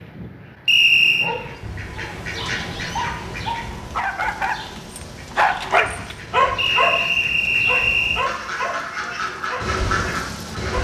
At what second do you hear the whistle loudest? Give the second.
1 s.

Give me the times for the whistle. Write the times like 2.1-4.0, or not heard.
0.7-1.3, 6.5-8.2.